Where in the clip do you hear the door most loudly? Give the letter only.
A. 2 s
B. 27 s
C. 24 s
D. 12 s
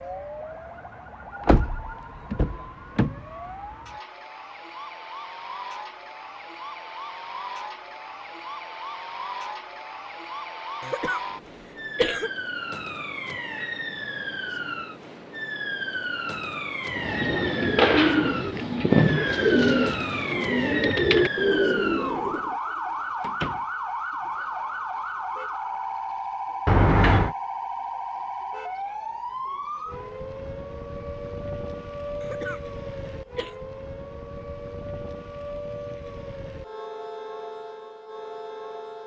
B.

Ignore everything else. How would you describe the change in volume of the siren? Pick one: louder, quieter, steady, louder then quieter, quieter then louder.
louder then quieter.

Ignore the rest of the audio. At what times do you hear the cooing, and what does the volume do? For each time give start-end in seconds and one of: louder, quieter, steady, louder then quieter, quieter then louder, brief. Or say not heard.
16.9-22.6 steady.